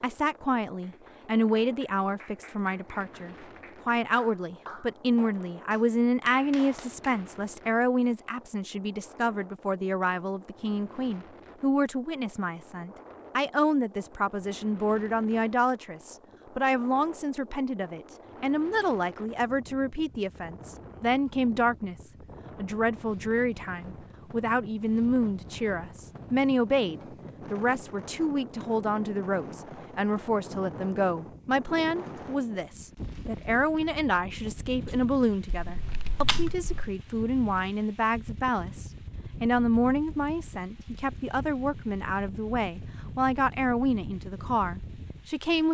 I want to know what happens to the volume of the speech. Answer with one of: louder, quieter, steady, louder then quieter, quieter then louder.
steady.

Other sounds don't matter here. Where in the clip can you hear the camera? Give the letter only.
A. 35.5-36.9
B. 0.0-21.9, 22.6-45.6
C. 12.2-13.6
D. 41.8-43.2
A.